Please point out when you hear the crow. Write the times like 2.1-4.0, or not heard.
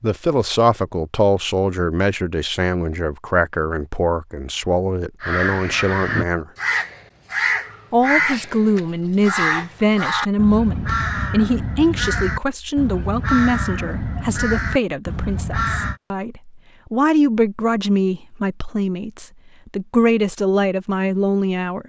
5.2-15.9.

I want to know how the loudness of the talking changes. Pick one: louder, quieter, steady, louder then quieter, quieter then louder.
steady.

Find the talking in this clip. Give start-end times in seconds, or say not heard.
0.0-6.5, 7.9-21.8.